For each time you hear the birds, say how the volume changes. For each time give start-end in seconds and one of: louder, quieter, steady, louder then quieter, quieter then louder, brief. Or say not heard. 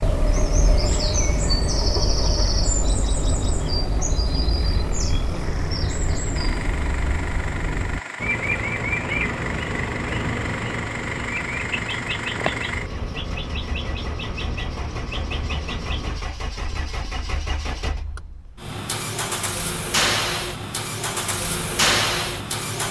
0.0-16.2 quieter.